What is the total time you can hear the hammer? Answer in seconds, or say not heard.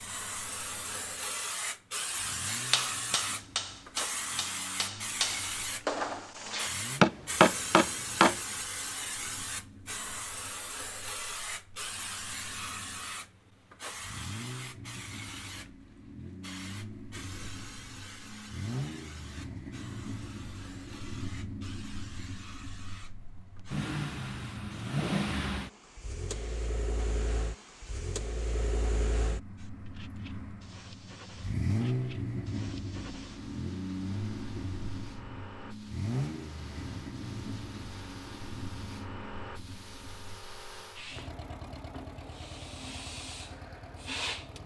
6 s.